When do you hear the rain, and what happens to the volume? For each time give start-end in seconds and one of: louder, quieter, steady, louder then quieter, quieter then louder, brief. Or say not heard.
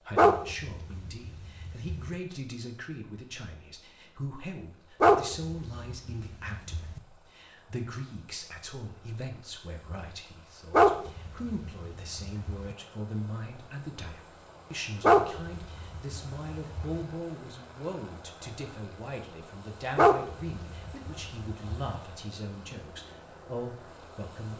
not heard.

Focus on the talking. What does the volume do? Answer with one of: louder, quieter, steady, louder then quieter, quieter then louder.
steady.